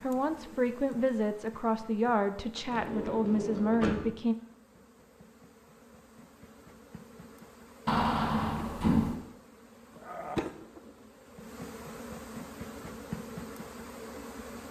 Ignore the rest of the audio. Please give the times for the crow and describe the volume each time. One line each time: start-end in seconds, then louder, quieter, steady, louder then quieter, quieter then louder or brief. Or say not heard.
not heard.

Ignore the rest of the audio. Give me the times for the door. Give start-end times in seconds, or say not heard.
2.5-4.1, 7.8-9.2.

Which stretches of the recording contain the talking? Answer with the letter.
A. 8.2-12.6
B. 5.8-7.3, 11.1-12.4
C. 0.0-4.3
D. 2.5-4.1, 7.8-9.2
C.